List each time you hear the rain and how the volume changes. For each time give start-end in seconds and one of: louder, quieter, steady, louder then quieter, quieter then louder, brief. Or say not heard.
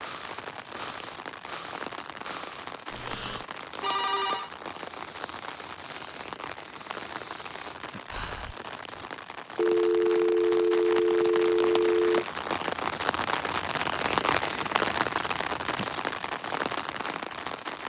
0.0-17.8 louder.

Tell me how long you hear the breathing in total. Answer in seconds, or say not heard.
9 s.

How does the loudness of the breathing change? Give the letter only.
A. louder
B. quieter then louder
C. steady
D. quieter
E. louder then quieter
C.